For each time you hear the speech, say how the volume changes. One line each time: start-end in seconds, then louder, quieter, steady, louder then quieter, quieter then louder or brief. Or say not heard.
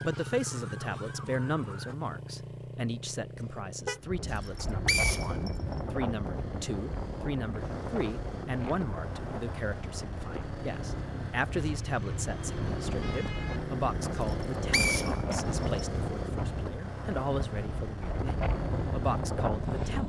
0.0-20.0 steady.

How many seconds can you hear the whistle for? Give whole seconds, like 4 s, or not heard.
3 s.